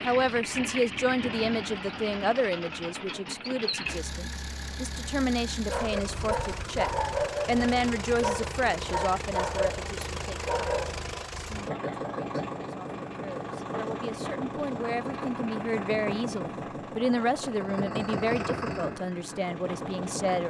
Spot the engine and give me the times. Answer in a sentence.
You can hear the engine from 0.0 to 20.4 s.